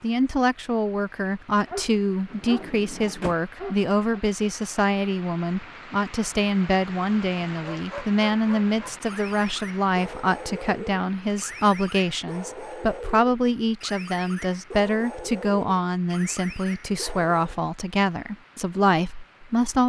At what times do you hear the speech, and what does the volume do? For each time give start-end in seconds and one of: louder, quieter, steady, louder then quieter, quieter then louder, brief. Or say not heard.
0.0-19.8 steady.